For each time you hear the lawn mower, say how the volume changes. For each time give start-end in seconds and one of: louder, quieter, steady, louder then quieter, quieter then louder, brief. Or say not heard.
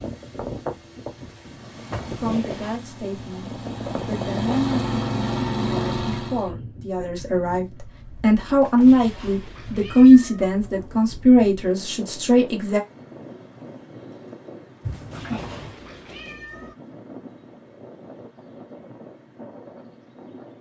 1.5-6.5 louder.